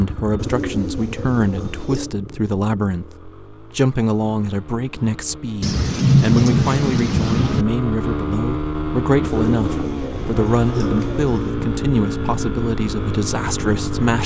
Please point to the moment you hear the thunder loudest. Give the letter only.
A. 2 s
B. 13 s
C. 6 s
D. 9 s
C.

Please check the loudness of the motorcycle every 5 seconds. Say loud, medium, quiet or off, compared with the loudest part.
medium, loud, loud.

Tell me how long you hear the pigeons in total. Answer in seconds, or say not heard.
4 s.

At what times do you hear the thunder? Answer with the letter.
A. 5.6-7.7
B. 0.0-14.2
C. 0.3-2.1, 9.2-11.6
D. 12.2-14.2
A.